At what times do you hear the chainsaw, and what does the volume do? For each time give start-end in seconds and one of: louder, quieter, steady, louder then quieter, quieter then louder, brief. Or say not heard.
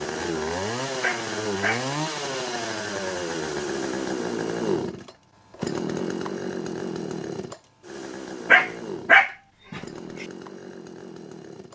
0.0-11.7 quieter.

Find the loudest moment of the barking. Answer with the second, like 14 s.
9 s.